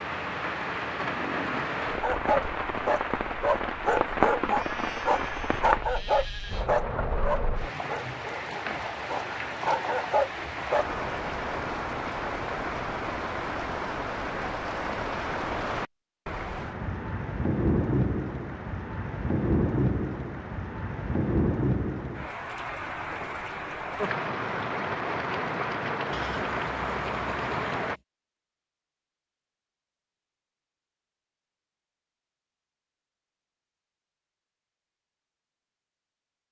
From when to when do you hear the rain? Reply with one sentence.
The rain can be heard from 0.0 to 28.0 s.